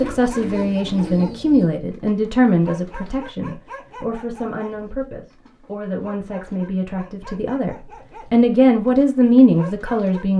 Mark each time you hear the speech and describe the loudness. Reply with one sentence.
You can hear the speech from 0.0 to 10.3 s, getting quieter then louder.